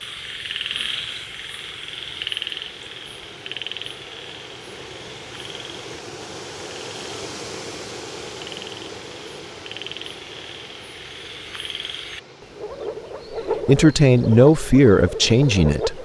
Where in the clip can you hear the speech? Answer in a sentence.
The speech can be heard from 13.7 to 16.0 s.